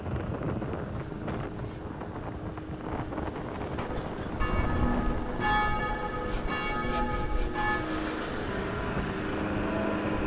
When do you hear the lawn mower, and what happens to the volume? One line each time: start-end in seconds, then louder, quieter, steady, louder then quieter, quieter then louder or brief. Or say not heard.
0.0-10.2 louder.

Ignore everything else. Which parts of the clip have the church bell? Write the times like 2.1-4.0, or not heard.
3.7-10.2.